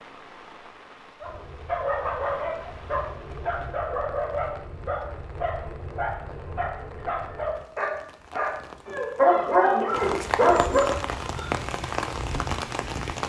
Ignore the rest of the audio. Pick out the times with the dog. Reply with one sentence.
The dog can be heard from 1.2 to 11.5 s.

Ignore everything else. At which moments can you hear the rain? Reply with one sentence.
You can hear the rain from 0.0 to 13.2 s.